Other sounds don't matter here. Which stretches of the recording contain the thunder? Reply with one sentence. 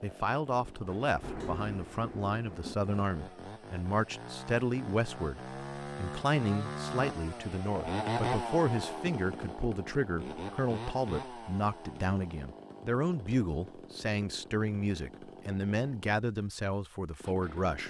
The thunder can be heard from 0.8 to 2.8 s.